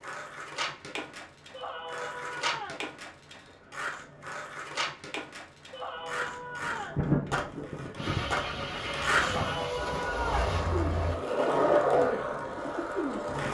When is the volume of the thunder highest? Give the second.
7 s.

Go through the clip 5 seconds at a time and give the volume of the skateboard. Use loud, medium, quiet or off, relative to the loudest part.
medium, medium, loud.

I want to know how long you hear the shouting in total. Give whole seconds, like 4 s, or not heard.
4 s.